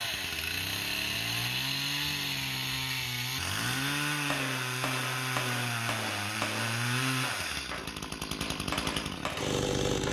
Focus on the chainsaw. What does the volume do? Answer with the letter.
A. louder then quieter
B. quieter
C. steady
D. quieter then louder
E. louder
C.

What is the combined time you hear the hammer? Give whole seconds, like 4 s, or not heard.
6 s.